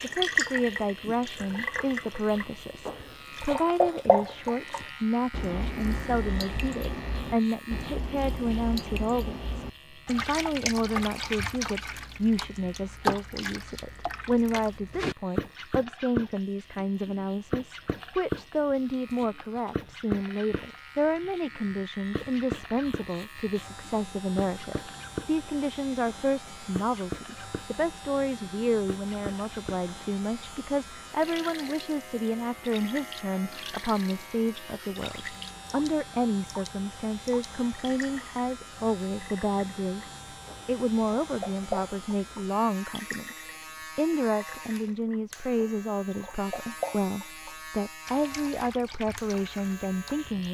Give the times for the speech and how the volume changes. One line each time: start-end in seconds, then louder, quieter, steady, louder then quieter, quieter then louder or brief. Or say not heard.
0.0-50.5 steady.